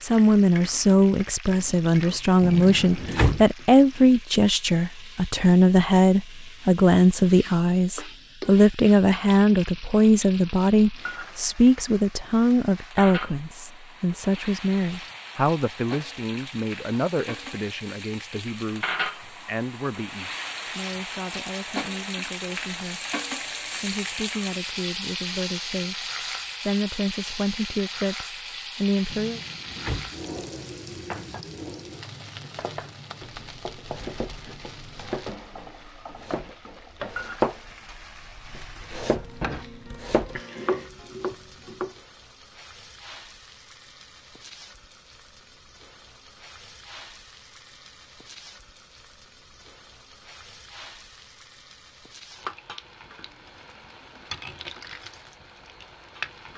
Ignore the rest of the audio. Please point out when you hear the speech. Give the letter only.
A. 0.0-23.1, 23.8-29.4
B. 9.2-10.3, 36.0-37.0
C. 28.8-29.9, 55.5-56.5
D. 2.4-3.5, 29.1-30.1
A.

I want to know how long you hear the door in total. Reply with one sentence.
You can hear the door for 2 seconds altogether.